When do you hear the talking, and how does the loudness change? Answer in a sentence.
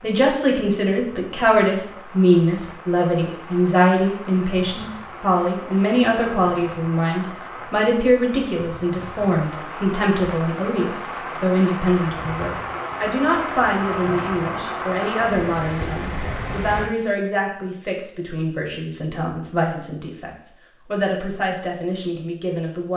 You can hear the talking from 0.0 to 22.9 s, getting quieter.